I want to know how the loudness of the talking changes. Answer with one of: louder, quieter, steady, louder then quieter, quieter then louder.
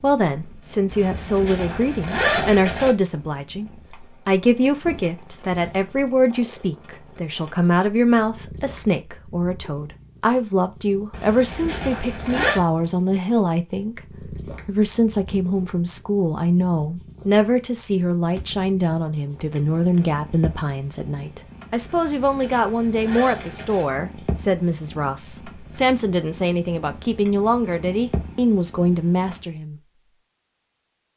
steady.